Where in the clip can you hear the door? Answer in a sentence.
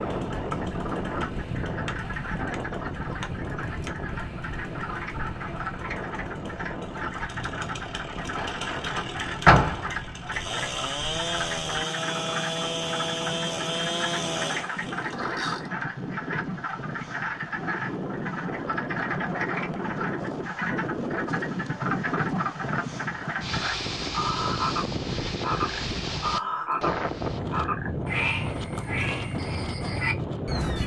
The door can be heard from 8.3 to 9.8 s.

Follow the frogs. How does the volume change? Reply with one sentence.
The volume of the frogs goes up.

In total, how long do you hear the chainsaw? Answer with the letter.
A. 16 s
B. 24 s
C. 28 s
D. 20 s
A.